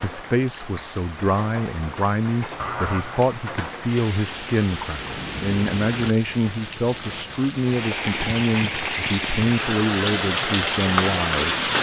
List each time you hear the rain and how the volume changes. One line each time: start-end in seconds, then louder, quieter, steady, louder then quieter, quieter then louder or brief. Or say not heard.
0.0-11.7 louder.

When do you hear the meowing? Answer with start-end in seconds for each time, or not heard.
2.5-3.2.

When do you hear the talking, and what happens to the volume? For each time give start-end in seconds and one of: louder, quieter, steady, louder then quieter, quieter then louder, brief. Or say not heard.
0.0-11.7 steady.